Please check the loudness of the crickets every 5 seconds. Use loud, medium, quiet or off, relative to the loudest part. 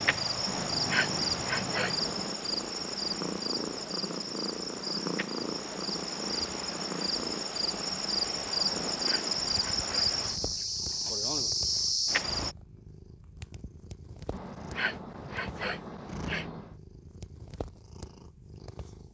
loud, loud, loud, off.